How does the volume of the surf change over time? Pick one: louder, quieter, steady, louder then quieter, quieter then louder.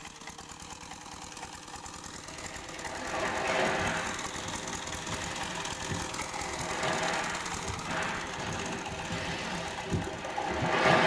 quieter then louder.